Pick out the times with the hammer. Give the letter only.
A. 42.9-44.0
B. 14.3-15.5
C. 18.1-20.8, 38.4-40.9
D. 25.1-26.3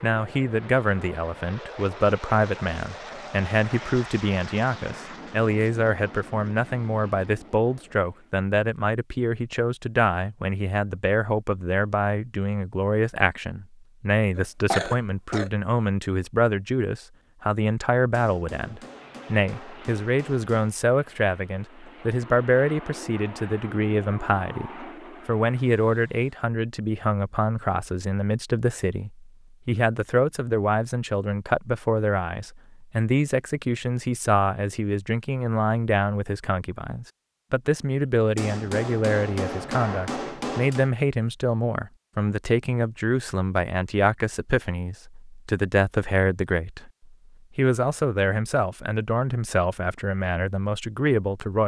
C.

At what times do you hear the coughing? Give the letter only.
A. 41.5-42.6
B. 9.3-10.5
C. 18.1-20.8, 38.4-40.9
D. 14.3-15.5
D.